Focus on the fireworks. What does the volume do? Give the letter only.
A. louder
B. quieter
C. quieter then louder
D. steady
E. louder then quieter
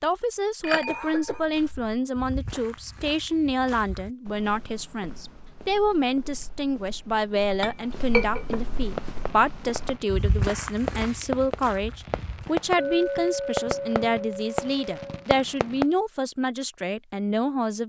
A.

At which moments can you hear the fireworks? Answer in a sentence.
You can hear the fireworks from 8.8 to 15.8 s.